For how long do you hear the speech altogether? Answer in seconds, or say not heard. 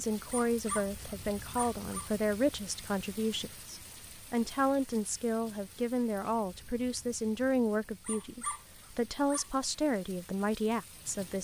11 s.